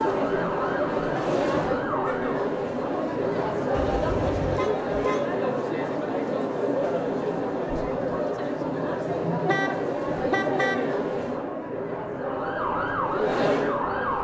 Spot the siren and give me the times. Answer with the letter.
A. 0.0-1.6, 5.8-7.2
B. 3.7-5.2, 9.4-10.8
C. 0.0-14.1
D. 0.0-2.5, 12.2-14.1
D.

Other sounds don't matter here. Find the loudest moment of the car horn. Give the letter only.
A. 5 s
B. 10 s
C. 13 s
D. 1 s
B.